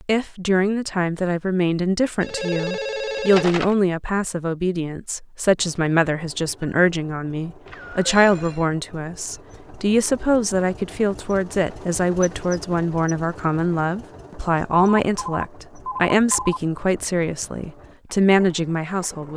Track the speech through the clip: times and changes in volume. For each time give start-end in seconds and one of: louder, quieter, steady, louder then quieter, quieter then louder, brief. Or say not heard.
0.0-19.3 steady.